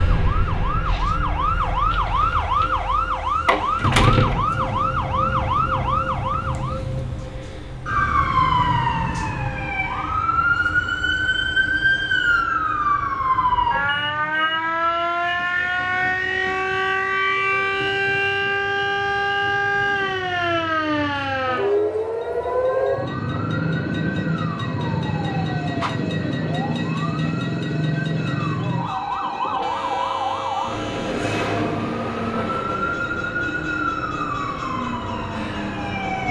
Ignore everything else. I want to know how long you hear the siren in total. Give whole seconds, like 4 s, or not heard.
36 s.